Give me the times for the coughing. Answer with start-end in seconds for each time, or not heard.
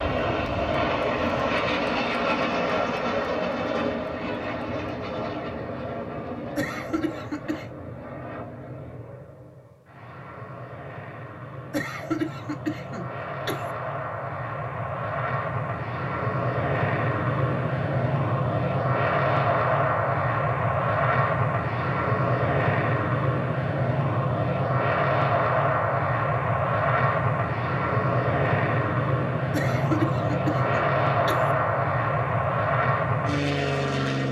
6.5-7.7, 11.7-13.7, 29.5-31.5.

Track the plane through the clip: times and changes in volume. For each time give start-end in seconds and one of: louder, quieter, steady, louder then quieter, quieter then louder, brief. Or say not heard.
0.0-34.2 quieter then louder.